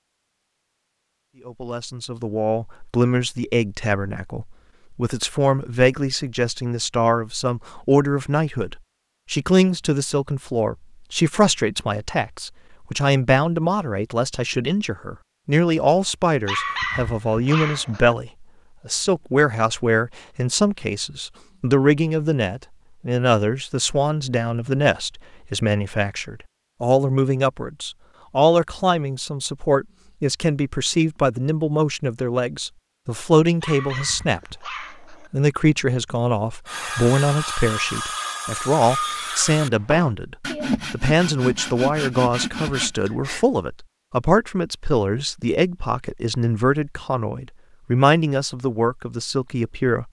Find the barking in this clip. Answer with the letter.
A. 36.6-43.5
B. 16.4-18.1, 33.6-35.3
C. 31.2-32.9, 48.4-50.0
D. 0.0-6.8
B.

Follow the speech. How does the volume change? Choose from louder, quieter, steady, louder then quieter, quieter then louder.
steady.